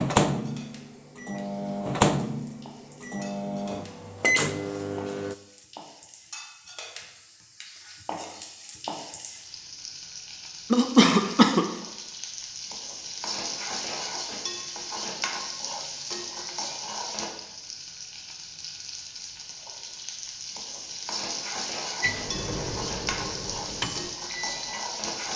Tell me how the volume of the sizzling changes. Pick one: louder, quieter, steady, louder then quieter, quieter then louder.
louder.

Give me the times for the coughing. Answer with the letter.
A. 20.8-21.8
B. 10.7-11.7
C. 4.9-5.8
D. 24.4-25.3
B.